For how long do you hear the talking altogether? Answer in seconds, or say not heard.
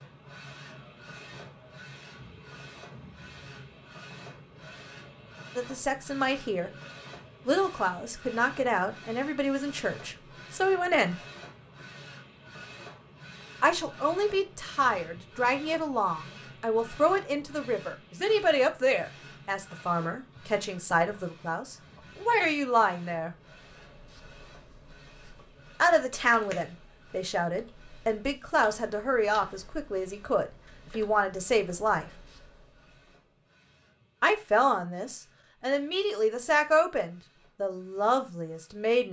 26 s.